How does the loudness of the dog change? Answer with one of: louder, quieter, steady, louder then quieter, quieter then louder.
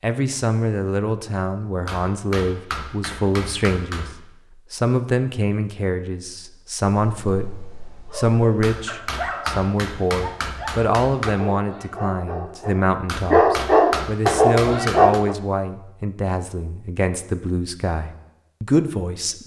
louder.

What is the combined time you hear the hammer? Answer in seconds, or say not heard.
7 s.